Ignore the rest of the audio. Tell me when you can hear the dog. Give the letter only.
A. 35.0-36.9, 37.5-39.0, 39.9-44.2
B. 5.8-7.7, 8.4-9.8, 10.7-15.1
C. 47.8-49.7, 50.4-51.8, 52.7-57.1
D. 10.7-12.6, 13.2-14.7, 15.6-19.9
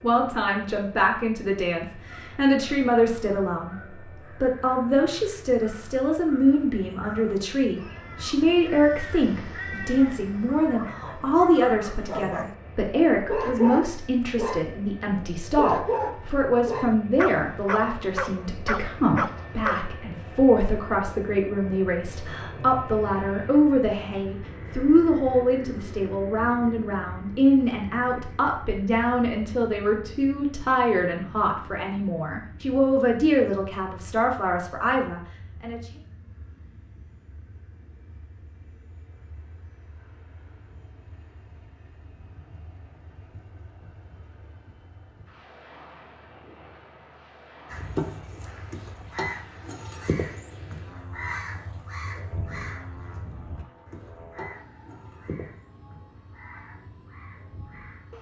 D.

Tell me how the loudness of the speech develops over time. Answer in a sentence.
The volume of the speech stays about the same.